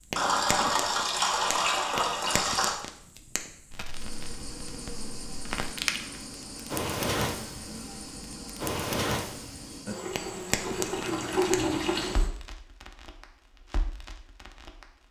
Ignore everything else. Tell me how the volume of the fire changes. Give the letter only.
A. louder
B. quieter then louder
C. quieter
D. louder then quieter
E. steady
D.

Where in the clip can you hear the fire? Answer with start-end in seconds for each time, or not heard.
0.0-14.9.